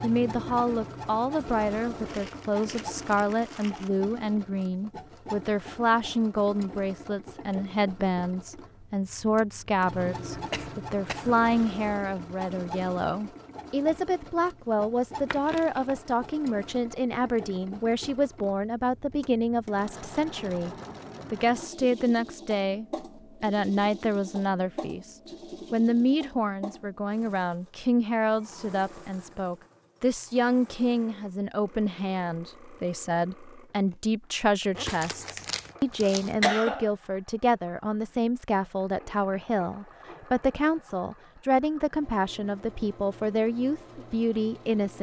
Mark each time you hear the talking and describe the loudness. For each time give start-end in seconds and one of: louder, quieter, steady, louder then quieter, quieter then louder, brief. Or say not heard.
0.0-20.7 steady
21.3-44.9 steady.